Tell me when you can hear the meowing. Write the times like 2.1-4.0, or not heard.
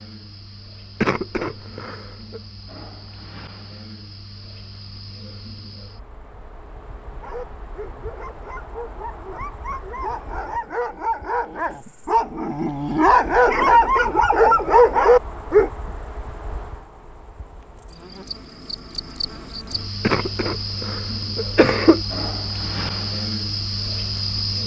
not heard.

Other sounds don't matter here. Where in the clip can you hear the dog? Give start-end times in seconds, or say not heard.
7.2-15.7.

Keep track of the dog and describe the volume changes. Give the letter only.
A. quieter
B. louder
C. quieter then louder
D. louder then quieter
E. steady
B.